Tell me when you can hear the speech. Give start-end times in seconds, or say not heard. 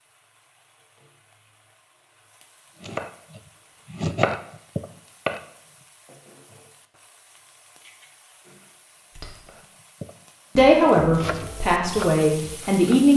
10.6-13.1.